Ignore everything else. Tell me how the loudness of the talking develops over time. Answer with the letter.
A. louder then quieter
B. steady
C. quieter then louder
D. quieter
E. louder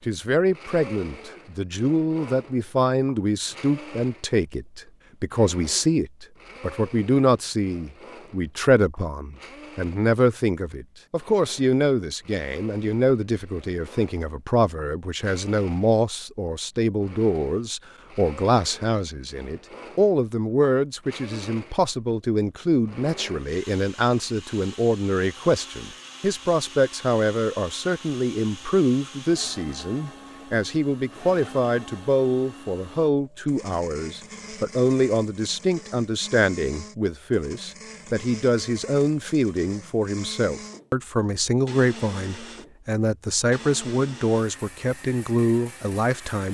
B.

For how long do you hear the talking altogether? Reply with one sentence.
The talking can be heard for 46 seconds in total.